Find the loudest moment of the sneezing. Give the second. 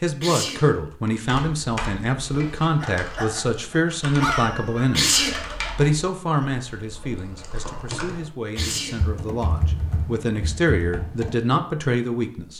5 s.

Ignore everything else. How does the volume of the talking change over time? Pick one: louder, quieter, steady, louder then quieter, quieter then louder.
quieter then louder.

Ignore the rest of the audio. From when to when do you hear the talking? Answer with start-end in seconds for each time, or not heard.
0.0-12.5.